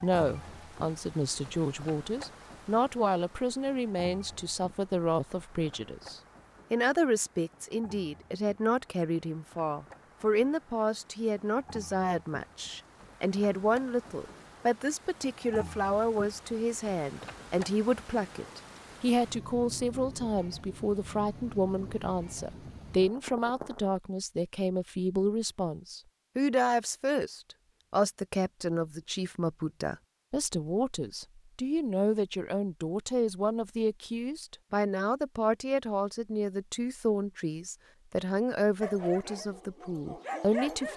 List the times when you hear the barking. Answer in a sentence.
The barking can be heard from 38.8 to 40.9 s.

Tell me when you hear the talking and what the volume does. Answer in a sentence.
The talking can be heard from 0.0 to 40.9 s, at a steady volume.